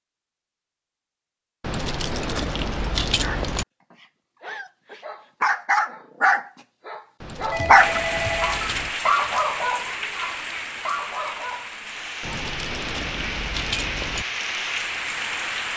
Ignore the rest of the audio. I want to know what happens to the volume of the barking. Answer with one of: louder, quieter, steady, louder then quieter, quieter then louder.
louder then quieter.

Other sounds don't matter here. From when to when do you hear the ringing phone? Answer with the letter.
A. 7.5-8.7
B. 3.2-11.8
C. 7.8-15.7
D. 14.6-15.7
A.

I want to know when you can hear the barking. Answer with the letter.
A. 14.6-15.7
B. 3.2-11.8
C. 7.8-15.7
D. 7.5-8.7
B.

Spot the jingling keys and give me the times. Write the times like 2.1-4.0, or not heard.
1.6-3.6, 7.2-8.9, 12.2-14.2.